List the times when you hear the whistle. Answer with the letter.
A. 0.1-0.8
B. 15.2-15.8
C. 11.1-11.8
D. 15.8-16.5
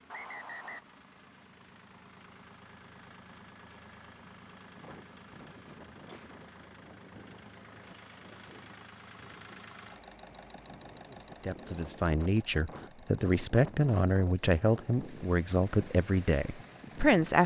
A.